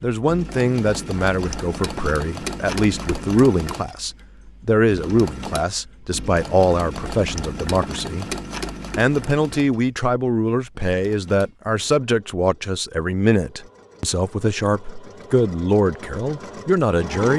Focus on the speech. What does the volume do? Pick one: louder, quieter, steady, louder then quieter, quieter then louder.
steady.